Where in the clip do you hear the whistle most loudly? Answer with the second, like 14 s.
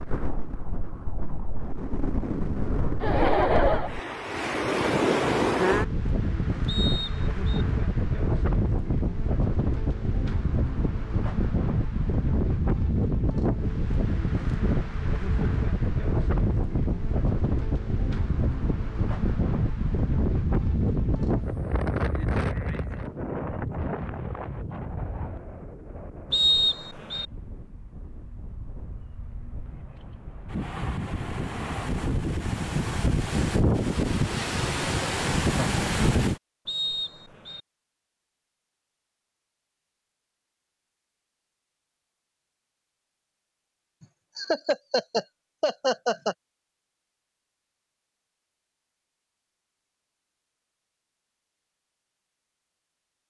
27 s.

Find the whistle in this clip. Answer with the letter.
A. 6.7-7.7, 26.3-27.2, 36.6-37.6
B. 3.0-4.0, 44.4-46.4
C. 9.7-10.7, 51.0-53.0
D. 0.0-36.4
A.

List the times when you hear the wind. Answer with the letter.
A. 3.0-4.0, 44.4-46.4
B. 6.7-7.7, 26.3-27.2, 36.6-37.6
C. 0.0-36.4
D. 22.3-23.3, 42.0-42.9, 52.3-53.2
C.